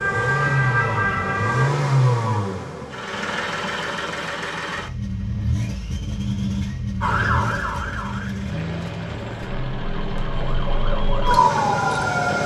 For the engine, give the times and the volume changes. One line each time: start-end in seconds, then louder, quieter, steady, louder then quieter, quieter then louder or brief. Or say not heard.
0.0-12.4 quieter.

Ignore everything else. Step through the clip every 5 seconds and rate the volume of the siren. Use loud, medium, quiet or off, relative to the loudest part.
loud, medium, loud.